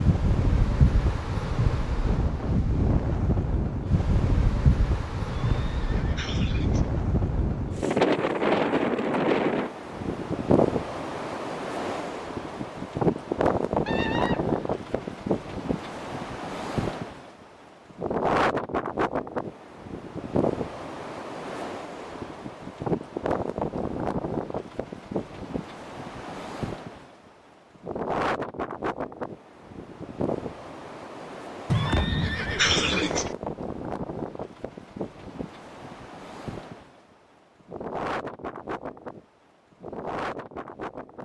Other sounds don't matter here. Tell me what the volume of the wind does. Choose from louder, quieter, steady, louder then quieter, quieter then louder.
quieter.